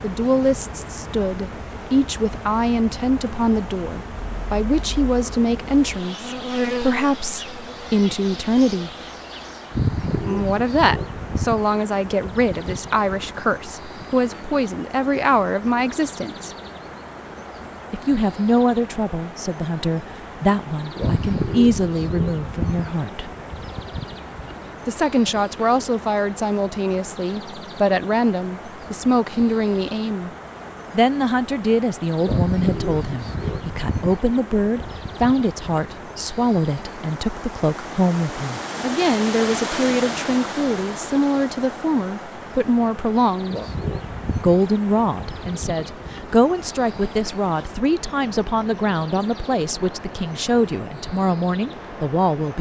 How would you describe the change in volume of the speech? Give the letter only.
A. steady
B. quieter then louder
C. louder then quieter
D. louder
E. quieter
A.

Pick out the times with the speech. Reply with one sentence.
You can hear the speech from 0.0 to 8.9 s, from 10.2 to 16.5 s, from 17.9 to 23.3 s, from 24.9 to 30.3 s, from 30.9 to 43.5 s and from 44.4 to 52.5 s.